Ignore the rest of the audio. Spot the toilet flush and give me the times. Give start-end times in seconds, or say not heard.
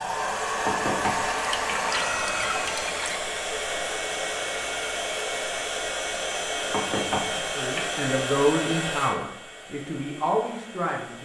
1.0-3.2.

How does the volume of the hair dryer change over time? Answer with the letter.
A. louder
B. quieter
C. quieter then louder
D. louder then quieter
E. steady
B.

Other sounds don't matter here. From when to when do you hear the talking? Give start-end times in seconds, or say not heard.
7.3-11.2.